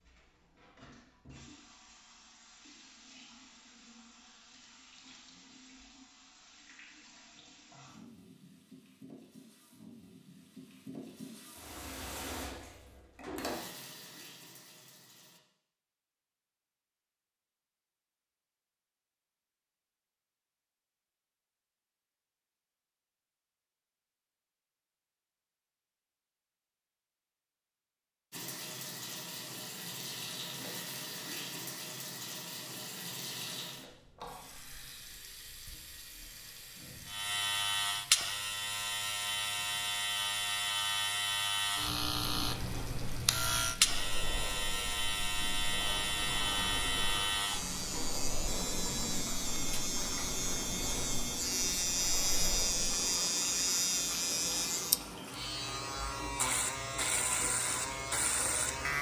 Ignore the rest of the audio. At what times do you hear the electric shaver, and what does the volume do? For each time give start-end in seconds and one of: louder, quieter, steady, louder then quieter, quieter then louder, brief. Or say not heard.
37.0-58.9 steady.